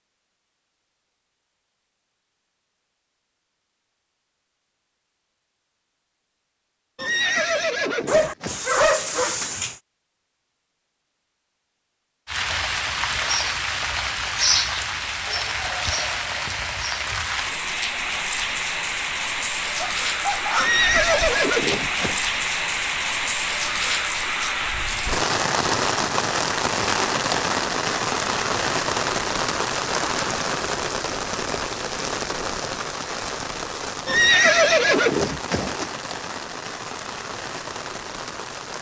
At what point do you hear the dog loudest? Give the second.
9 s.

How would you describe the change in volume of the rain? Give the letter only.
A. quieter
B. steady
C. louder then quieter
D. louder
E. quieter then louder
A.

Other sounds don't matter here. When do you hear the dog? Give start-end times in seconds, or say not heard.
8.1-9.8, 19.8-21.4.